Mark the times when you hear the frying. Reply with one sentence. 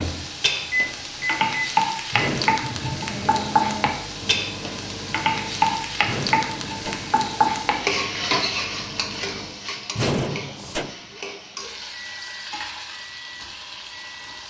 You can hear the frying from 0.0 to 14.4 s.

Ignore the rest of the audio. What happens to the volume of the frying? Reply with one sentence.
The loudness of the frying goes down.